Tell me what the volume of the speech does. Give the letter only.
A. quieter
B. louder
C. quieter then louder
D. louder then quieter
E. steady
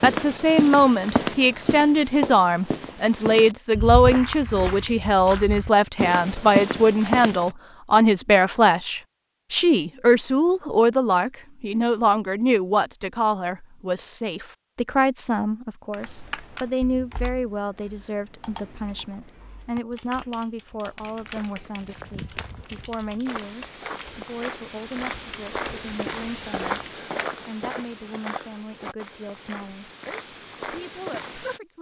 A.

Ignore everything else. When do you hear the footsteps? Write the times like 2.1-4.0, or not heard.
0.0-7.5, 21.0-31.6.